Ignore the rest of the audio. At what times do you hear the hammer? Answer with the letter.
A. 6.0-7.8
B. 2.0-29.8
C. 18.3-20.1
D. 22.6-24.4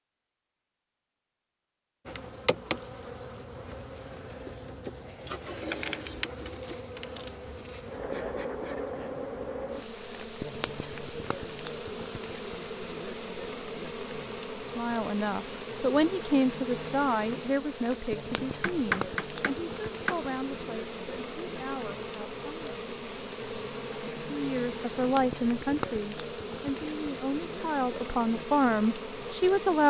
C.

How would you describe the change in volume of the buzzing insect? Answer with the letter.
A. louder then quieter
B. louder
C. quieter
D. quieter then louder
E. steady
E.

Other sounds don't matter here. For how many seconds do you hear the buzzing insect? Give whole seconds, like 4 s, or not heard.
28 s.